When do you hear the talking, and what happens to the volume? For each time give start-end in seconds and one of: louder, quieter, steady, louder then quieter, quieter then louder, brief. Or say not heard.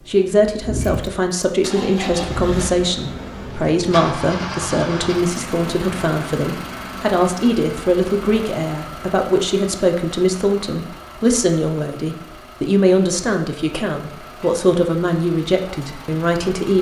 0.1-16.7 steady.